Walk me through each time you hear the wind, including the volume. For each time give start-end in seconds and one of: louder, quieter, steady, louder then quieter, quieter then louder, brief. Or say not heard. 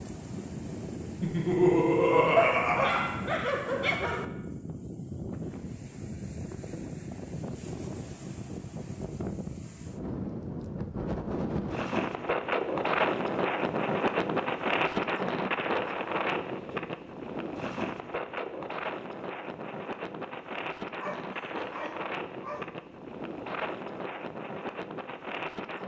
0.0-25.8 louder then quieter.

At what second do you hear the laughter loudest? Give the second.
2 s.